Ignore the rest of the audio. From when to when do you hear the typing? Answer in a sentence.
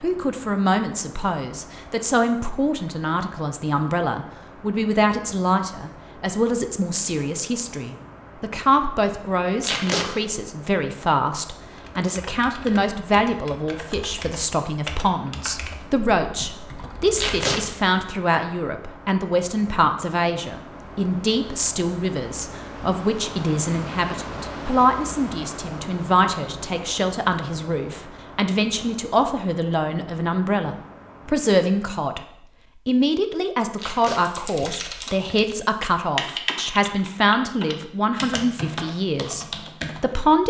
The typing can be heard from 11.8 to 17.8 s and from 34.1 to 40.2 s.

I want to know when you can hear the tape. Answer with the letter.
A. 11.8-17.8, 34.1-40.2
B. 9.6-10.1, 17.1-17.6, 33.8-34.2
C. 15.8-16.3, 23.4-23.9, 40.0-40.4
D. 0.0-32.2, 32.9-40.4
B.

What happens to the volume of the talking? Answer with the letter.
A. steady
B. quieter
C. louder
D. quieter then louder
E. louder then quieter
A.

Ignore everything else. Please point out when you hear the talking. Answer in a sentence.
You can hear the talking from 0.0 to 32.2 s and from 32.9 to 40.4 s.